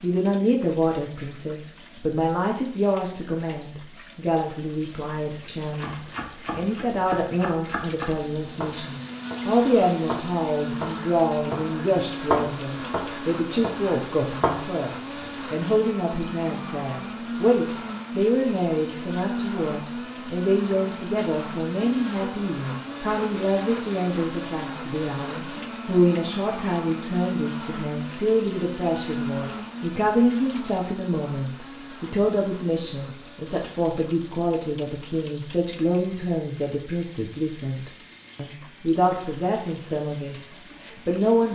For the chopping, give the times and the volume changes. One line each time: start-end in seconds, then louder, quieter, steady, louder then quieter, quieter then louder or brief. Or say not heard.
5.7-15.2 louder.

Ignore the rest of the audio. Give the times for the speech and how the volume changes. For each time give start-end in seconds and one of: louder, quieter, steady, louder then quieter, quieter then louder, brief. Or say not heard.
0.0-41.5 steady.